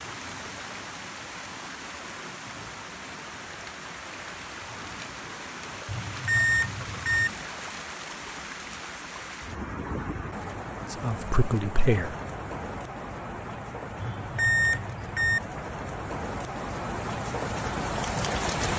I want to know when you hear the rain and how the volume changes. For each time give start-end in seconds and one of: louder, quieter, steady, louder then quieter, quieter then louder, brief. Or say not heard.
0.0-18.7 louder.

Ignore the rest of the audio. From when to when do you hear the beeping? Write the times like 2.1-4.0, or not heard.
5.8-7.3, 14.0-15.4.